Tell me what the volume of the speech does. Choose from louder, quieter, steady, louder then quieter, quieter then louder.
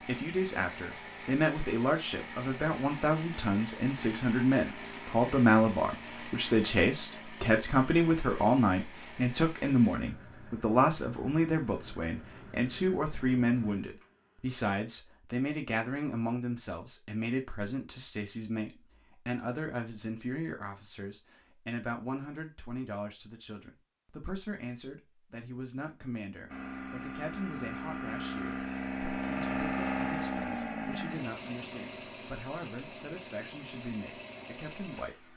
quieter.